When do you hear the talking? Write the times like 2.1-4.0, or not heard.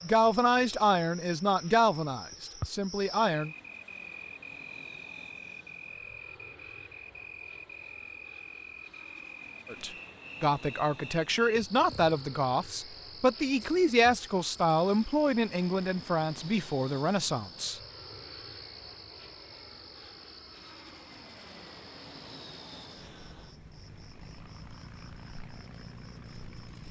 0.0-3.5, 9.7-17.8.